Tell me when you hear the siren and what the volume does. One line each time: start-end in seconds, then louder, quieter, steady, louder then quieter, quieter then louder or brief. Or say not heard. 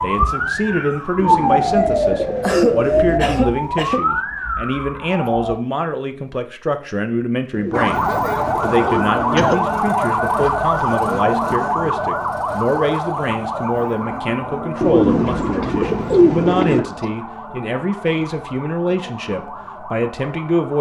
0.0-5.5 quieter
7.7-20.7 quieter.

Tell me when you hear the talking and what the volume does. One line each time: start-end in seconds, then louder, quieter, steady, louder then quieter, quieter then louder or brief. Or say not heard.
0.0-20.7 steady.